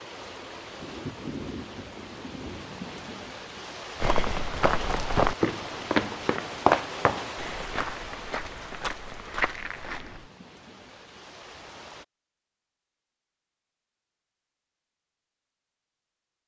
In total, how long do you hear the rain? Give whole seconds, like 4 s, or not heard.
12 s.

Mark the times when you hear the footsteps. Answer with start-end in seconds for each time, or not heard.
4.0-10.3.